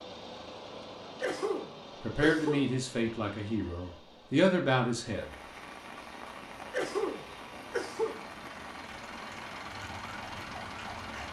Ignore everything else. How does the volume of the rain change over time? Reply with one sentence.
The loudness of the rain stays about the same.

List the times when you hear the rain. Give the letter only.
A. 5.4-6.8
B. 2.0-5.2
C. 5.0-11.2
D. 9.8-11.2
C.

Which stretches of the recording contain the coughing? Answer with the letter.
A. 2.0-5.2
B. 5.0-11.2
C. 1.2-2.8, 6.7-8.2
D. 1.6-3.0
C.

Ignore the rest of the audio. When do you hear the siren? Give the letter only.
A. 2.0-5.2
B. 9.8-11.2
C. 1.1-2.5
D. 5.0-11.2
B.